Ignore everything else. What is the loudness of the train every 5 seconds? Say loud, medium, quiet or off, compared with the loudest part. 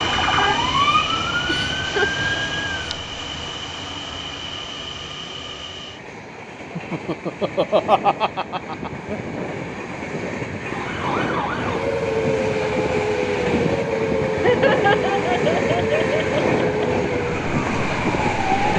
medium, medium, loud, loud.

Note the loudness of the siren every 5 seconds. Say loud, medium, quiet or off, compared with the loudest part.
loud, off, loud, loud.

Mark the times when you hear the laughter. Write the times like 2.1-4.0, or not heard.
1.4-2.1, 6.8-9.2, 14.3-16.9.